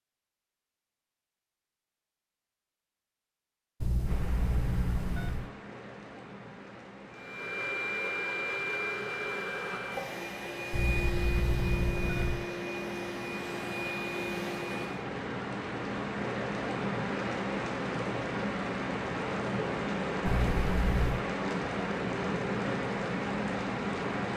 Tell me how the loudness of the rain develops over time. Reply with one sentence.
The loudness of the rain goes up.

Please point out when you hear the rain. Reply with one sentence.
The rain can be heard from 4.0 to 24.3 s.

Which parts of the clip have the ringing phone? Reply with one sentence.
You can hear the ringing phone from 3.8 to 5.5 s, from 10.7 to 12.4 s and from 20.2 to 21.2 s.